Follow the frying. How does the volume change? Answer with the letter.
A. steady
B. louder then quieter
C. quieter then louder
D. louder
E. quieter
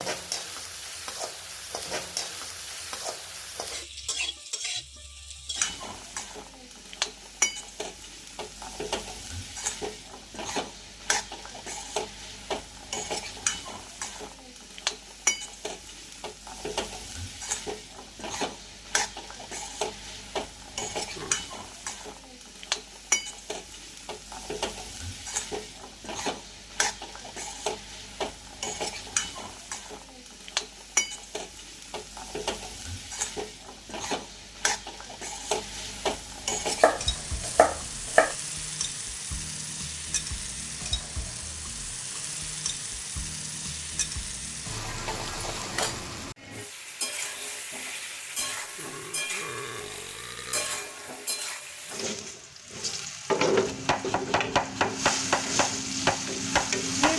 A.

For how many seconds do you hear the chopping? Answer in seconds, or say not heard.
5 s.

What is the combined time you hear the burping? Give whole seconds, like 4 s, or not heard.
3 s.